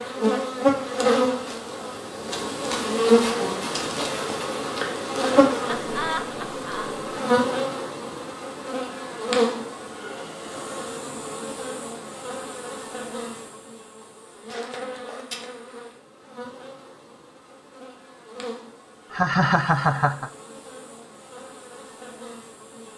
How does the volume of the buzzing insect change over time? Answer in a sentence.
The volume of the buzzing insect goes down.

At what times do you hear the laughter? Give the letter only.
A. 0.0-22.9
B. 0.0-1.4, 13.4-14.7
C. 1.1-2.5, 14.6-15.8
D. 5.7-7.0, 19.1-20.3
D.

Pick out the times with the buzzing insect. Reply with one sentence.
You can hear the buzzing insect from 0.0 to 22.9 s.